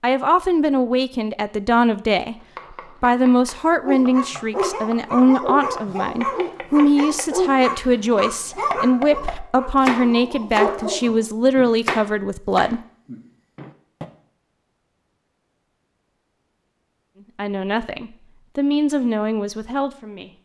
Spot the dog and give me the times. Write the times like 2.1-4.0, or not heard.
3.5-11.2.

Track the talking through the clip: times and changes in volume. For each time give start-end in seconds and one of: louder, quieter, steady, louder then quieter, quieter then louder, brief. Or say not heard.
0.0-12.8 steady
17.4-20.3 brief.